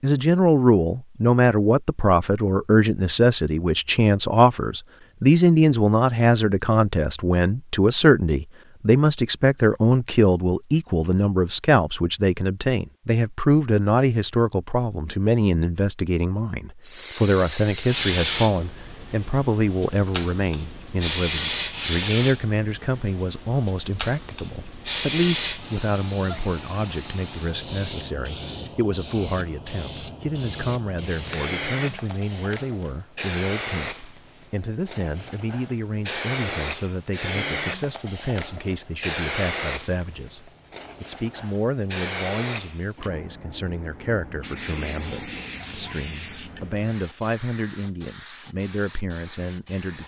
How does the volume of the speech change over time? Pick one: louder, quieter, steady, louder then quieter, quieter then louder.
quieter.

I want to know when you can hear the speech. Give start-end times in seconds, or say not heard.
0.0-50.0.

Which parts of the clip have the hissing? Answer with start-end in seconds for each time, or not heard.
16.8-50.0.